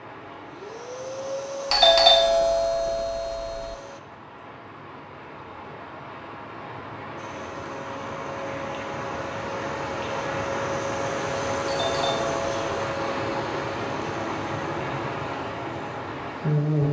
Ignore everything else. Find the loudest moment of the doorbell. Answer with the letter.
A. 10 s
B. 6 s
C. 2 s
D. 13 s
C.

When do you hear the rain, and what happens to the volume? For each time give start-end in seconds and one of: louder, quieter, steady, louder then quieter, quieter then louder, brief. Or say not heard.
0.0-16.8 louder.